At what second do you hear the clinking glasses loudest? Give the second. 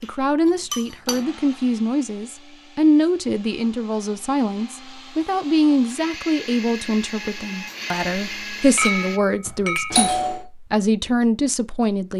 9 s.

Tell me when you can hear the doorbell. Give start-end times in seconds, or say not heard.
9.4-10.4.